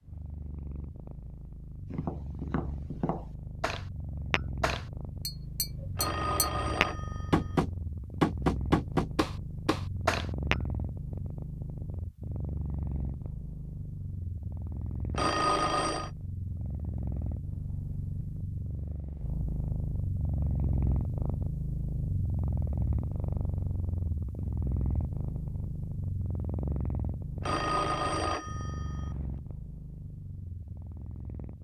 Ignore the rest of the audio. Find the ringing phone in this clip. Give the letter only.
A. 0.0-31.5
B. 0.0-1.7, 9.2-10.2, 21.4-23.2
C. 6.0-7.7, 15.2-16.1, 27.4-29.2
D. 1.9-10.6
C.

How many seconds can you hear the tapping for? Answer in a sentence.
The tapping can be heard for 9 seconds in total.